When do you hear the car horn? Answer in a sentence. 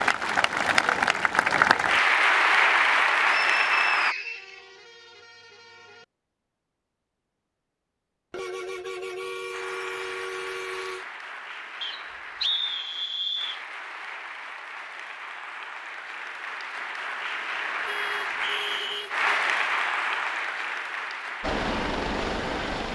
You can hear the car horn from 4.0 to 6.0 s, from 8.3 to 11.1 s and from 17.9 to 19.2 s.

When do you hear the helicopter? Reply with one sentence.
The helicopter can be heard from 21.4 to 22.8 s.